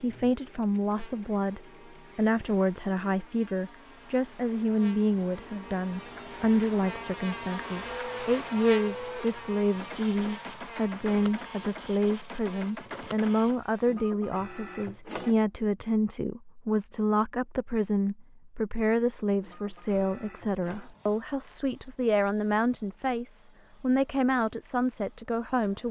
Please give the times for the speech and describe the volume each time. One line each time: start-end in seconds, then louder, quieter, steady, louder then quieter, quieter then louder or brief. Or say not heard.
0.0-25.8 steady.